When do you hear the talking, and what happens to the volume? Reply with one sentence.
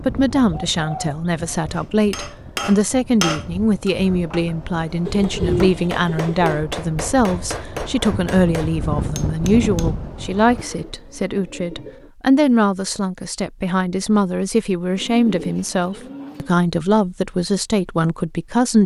The talking can be heard from 0.1 to 18.8 s, at a steady volume.